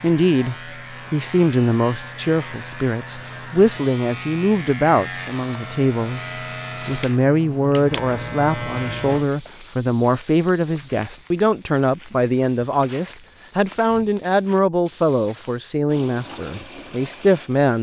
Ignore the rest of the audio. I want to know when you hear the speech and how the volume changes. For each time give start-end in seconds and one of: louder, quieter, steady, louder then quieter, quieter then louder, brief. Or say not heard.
0.0-17.7 steady.